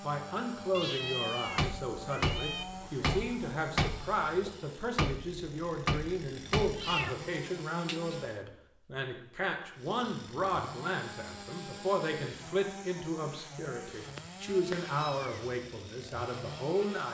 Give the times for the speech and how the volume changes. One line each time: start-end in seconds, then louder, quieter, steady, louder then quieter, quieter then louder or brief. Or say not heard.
0.0-17.0 steady.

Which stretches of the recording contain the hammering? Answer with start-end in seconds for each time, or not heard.
1.5-6.9.